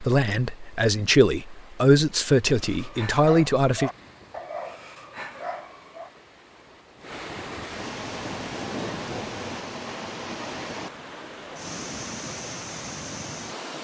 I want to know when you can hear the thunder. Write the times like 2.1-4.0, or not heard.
7.8-9.7.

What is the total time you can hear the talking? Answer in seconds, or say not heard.
4 s.